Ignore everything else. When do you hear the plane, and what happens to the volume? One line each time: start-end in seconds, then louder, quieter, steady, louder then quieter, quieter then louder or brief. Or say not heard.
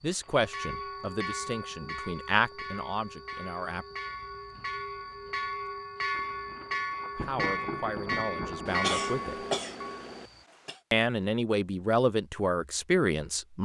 not heard.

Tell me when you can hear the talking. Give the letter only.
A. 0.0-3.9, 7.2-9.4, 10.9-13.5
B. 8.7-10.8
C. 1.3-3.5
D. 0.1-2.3
A.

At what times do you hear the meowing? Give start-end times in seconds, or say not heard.
not heard.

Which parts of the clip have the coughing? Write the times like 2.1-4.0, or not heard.
8.7-10.8.